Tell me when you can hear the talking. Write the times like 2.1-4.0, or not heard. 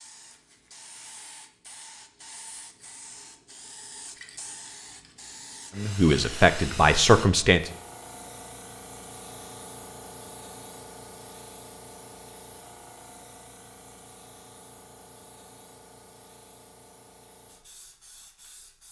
5.8-7.7.